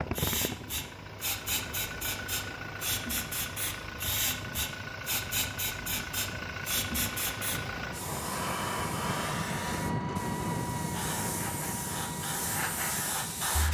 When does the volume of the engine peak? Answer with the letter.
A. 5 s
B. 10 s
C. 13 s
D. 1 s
B.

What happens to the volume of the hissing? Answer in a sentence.
The loudness of the hissing stays about the same.